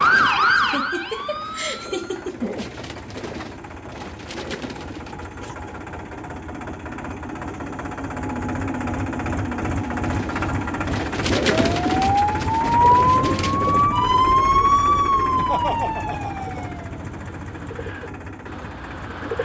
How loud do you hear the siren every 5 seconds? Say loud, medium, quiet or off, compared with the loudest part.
loud, off, loud, medium.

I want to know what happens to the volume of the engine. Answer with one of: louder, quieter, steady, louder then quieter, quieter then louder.
louder then quieter.